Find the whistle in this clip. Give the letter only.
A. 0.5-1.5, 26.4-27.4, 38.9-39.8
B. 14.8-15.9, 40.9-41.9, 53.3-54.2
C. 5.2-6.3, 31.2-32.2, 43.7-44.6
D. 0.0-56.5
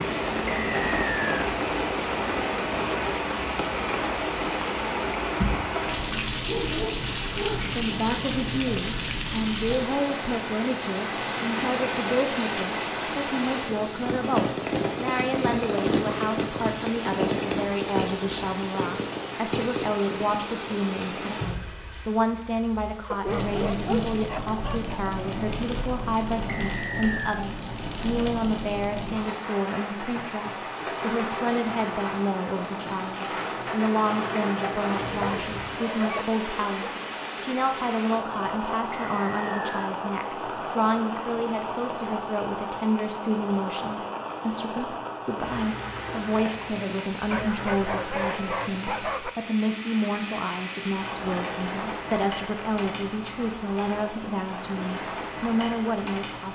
A.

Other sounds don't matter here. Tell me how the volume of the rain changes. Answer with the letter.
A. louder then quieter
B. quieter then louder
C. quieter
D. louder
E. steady
C.